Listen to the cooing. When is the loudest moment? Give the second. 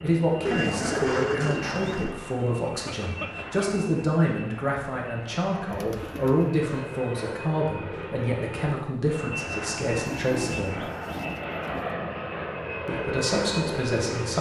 1 s.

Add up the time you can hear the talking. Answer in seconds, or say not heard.
12 s.